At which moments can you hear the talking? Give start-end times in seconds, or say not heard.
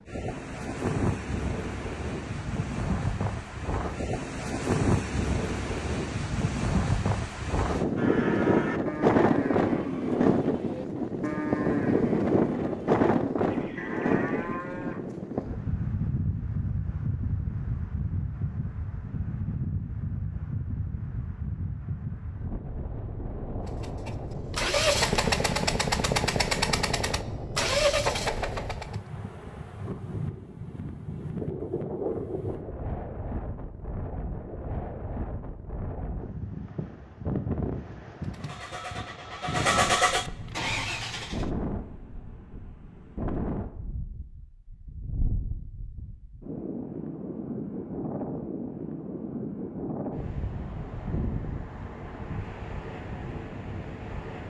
not heard.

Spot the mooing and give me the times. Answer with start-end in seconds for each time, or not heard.
8.0-15.0.